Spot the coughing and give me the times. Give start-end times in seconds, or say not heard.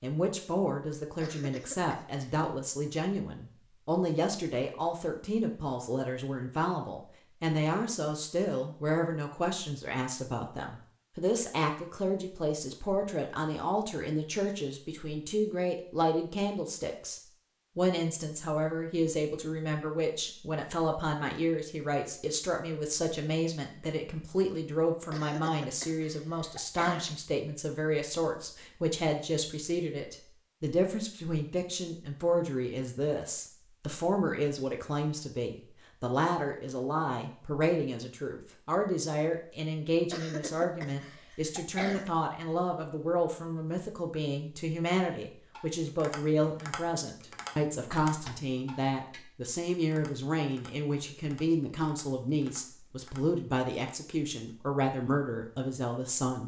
1.2-2.3, 25.1-27.1, 40.1-42.1.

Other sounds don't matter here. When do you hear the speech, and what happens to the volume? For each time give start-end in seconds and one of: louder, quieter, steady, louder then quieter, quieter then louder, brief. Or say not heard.
0.0-56.4 steady.